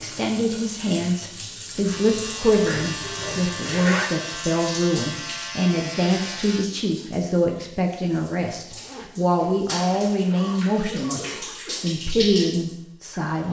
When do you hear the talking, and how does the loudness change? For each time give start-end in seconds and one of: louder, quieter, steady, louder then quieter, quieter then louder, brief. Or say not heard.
0.0-13.4 steady.